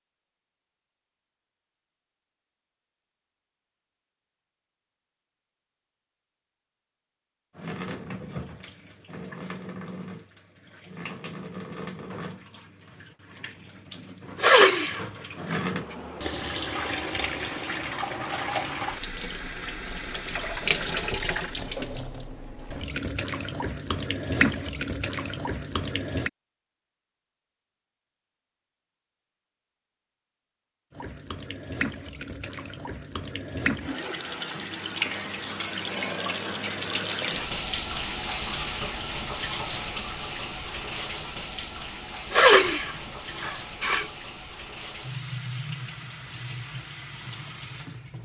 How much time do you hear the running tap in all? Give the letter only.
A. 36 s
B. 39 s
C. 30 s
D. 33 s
A.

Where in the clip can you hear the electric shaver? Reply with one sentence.
You can't hear the electric shaver here.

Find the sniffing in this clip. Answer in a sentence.
The sniffing can be heard from 14.4 to 15.7 s and from 42.3 to 44.1 s.